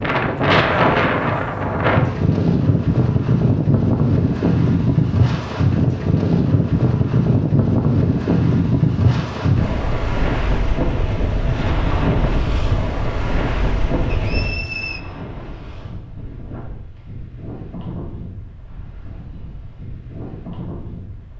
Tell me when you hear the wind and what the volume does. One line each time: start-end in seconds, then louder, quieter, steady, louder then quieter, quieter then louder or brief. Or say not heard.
0.0-21.3 quieter.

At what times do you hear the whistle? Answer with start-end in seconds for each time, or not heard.
14.1-15.0.